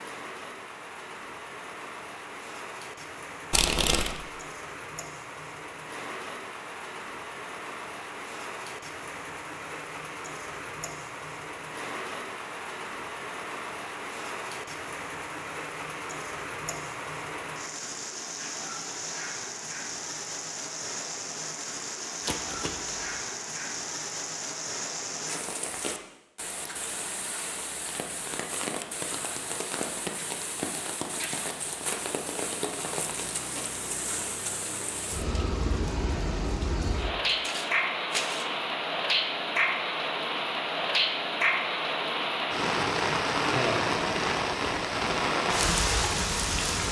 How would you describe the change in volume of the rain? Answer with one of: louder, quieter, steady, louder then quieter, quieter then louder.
louder.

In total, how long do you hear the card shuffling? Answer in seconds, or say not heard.
3 s.